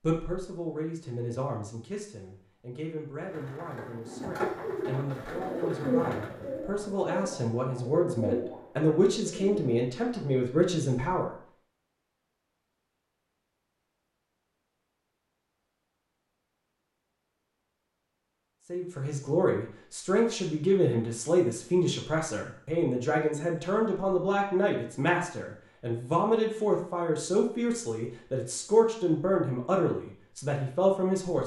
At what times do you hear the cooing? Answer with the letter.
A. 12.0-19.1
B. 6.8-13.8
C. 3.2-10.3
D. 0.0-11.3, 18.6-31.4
C.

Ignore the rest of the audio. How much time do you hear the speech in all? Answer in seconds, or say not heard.
24 s.